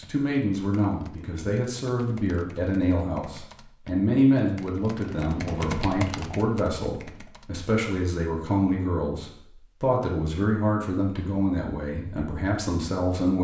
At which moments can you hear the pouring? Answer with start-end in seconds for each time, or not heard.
not heard.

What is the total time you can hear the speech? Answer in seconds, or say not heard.
13 s.